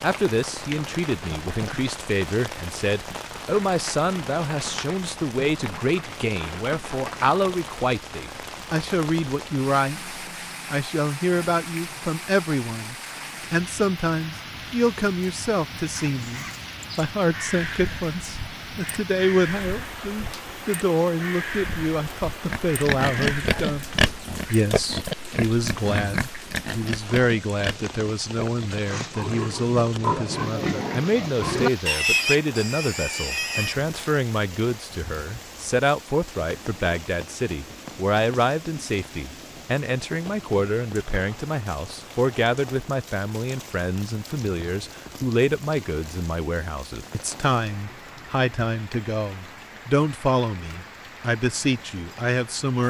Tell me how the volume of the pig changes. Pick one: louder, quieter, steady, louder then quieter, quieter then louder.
quieter then louder.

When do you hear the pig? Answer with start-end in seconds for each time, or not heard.
22.4-33.8.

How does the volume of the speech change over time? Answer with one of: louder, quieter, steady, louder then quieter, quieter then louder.
steady.